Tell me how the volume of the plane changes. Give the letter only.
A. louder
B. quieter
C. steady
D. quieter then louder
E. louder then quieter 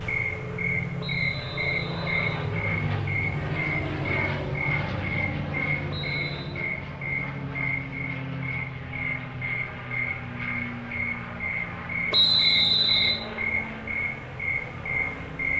B.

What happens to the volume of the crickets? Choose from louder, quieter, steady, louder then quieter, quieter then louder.
steady.